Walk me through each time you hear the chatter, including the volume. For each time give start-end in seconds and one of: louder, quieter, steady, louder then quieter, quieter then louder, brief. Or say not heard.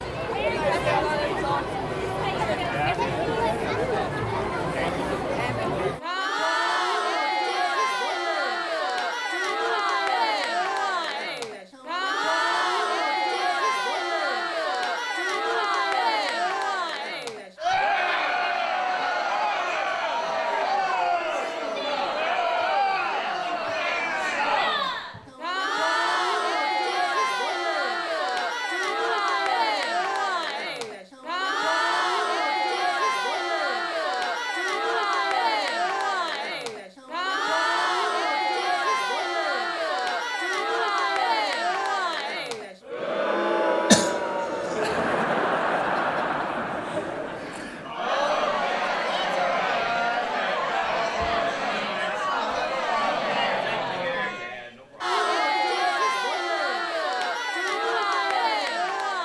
0.0-59.1 steady.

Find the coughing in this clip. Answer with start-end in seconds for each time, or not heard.
43.9-44.8.